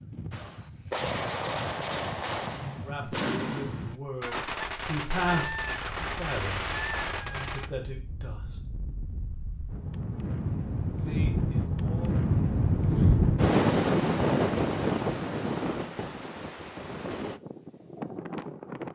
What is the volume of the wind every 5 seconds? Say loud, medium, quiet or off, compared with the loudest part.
quiet, quiet, loud, medium.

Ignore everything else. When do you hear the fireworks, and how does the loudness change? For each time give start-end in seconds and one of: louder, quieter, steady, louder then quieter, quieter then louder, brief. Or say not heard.
0.3-7.7 steady.